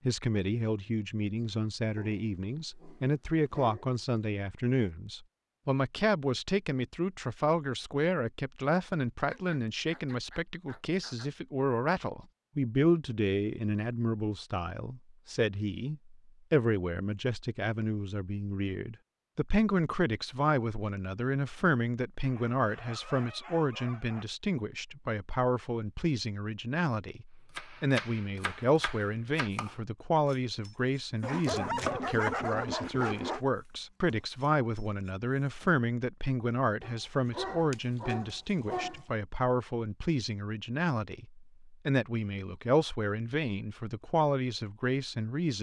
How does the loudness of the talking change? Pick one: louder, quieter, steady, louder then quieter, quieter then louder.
steady.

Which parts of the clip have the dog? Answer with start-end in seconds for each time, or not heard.
1.9-4.0, 9.3-11.3, 22.2-24.2, 31.2-33.5, 36.8-39.0.